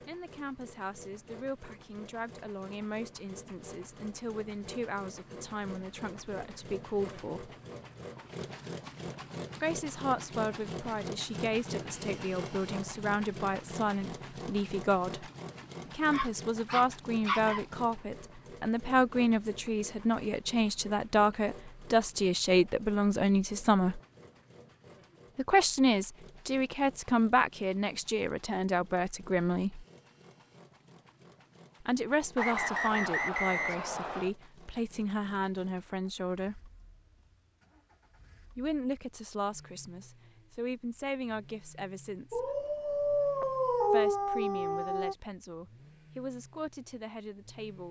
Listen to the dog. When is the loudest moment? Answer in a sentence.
The loudest moment of the dog is at 44 seconds.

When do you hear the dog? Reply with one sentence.
You can hear the dog from 16.1 to 17.6 s and from 42.3 to 45.1 s.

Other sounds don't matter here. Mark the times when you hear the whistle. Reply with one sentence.
You can hear the whistle from 32.4 to 34.3 s.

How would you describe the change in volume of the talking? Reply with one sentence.
The volume of the talking goes up, then down.